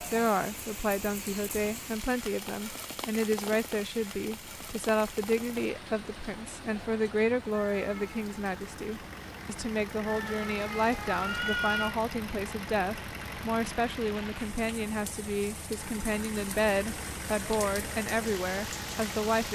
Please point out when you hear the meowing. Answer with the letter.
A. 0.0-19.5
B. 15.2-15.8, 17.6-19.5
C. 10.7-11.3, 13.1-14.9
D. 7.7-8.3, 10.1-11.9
D.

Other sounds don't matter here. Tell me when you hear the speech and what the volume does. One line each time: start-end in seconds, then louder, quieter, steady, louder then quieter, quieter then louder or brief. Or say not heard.
0.0-19.5 steady.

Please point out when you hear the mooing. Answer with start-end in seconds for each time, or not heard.
not heard.